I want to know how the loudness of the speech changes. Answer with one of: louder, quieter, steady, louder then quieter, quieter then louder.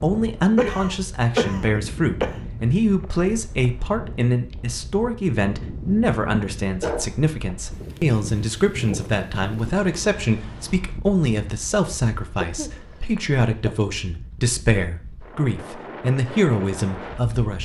steady.